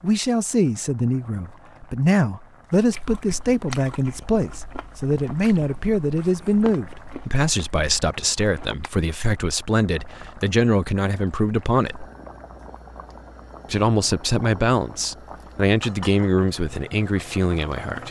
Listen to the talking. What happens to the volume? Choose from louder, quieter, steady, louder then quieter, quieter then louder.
steady.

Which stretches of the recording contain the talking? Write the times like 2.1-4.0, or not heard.
0.0-12.1, 13.7-18.0.